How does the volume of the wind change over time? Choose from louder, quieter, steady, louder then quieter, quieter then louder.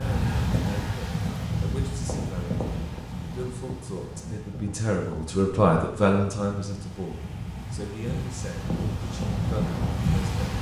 quieter then louder.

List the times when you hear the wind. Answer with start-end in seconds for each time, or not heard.
0.0-10.5.